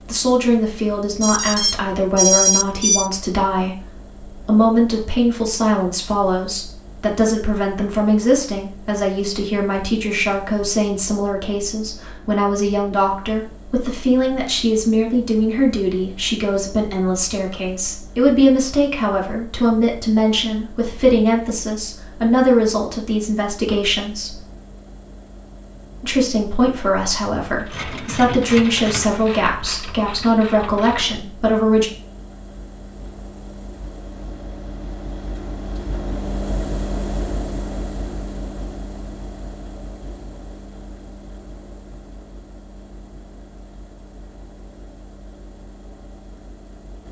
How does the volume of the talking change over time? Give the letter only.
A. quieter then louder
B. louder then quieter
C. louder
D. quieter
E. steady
E.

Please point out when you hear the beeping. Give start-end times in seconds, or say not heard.
1.2-3.1.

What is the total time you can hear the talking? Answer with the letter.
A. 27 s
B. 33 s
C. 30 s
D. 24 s
C.